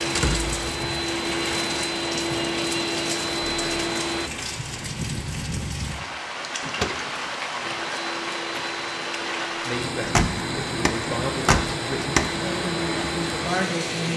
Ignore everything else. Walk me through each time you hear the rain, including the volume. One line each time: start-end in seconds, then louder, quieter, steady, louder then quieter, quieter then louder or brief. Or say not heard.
0.0-14.1 steady.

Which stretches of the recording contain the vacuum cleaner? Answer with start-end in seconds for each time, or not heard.
0.0-4.3, 7.6-14.1.